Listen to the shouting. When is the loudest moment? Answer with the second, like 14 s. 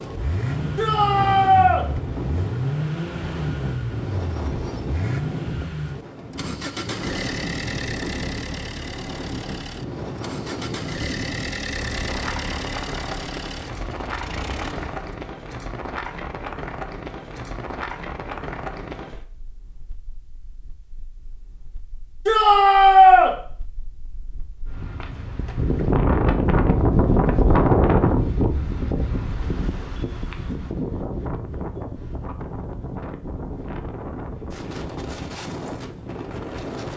23 s.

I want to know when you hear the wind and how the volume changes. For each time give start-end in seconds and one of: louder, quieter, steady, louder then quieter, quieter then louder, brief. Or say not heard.
0.0-36.9 louder then quieter.